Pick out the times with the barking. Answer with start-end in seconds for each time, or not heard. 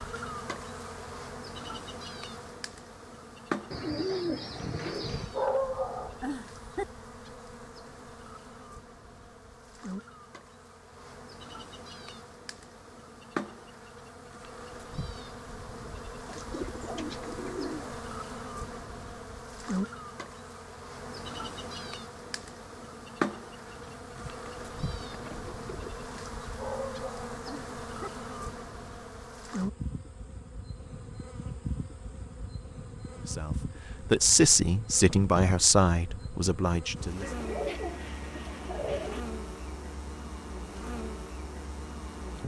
5.3-6.8, 26.6-28.1.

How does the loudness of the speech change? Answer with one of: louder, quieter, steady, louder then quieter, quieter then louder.
quieter.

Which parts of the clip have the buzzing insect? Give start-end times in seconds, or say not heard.
0.0-42.4.